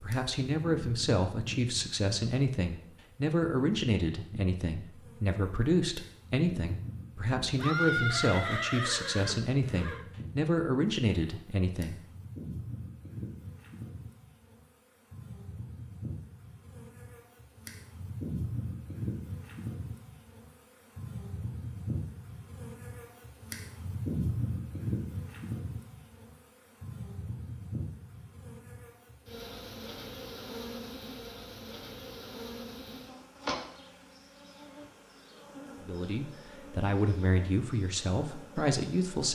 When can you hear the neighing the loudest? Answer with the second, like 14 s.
8 s.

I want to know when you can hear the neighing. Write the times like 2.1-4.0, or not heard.
7.5-10.1.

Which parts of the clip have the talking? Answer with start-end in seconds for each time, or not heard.
0.0-12.0, 35.8-39.3.